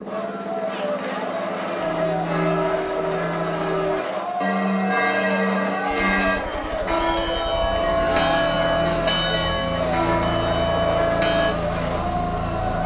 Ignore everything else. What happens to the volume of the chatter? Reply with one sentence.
The volume of the chatter stays about the same.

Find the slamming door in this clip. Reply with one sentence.
You can't hear the slamming door here.